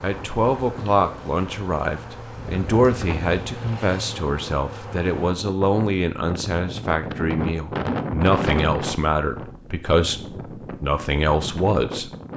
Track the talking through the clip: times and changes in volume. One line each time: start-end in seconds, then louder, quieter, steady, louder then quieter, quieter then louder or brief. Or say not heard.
0.0-12.1 steady.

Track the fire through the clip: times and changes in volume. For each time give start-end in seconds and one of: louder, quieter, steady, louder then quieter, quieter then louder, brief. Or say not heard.
not heard.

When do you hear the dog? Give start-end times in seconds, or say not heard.
not heard.